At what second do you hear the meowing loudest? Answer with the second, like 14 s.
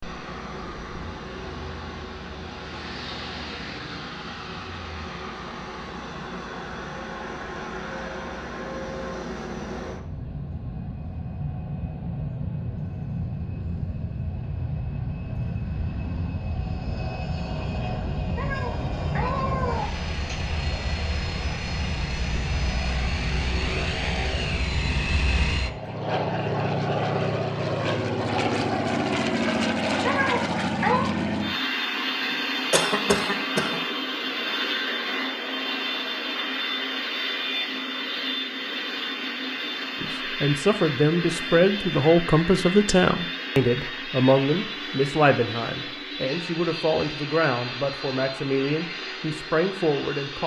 31 s.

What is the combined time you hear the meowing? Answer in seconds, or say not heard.
3 s.